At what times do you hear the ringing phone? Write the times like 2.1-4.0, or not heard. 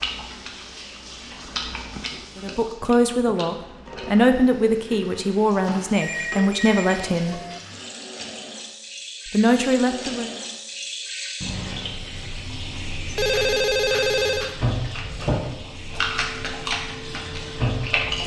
5.9-7.6, 13.1-14.6.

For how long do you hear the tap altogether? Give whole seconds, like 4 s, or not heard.
18 s.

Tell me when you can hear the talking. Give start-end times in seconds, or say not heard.
2.4-7.4, 9.3-10.3.